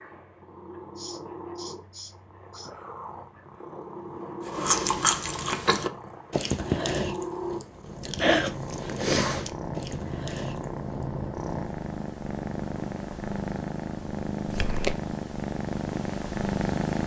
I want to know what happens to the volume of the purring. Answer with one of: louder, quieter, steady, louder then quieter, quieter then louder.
louder.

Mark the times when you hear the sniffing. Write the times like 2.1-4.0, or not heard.
0.9-2.7.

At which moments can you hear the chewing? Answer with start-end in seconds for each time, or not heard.
4.5-11.0.